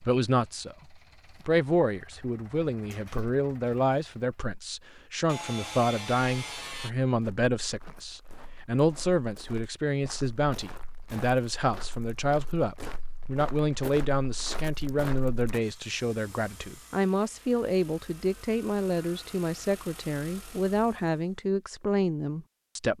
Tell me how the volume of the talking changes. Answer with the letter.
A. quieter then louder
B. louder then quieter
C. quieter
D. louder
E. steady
E.